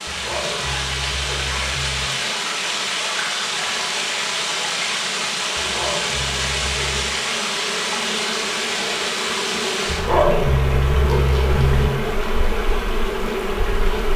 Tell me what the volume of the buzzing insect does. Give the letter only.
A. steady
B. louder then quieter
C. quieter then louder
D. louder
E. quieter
D.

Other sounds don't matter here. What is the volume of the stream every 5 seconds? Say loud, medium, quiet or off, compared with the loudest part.
loud, loud, medium.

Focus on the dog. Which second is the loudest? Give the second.
10 s.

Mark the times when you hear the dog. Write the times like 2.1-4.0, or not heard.
0.1-2.1, 5.5-7.2, 9.8-11.9.